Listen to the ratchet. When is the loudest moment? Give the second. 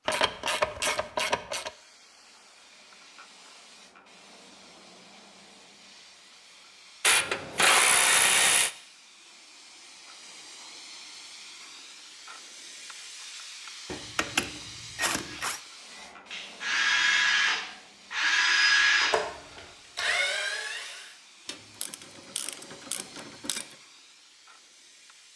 8 s.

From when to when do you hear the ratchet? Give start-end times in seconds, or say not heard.
0.1-1.7, 7.0-8.7, 13.9-15.6, 21.4-23.6.